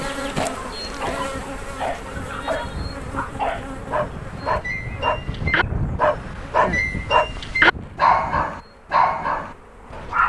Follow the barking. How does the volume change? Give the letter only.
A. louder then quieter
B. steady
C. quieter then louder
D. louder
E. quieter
D.